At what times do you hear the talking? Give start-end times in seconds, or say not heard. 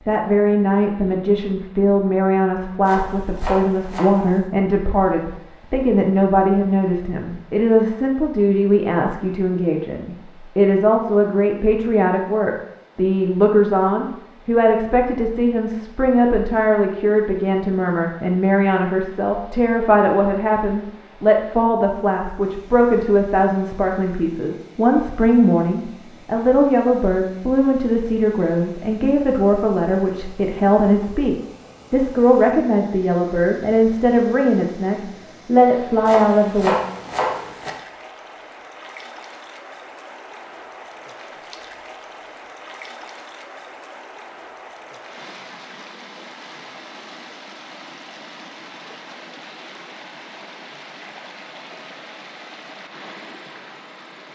0.1-36.7.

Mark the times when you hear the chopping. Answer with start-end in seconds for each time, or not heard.
2.9-4.5, 36.0-37.7.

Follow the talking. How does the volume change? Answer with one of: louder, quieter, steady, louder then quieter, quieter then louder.
steady.